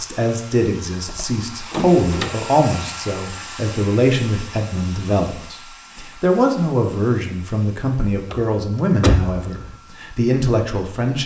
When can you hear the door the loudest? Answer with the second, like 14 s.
9 s.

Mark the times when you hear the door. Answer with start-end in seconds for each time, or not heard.
1.1-2.3, 8.3-9.8.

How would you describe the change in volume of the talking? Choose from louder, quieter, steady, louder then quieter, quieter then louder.
steady.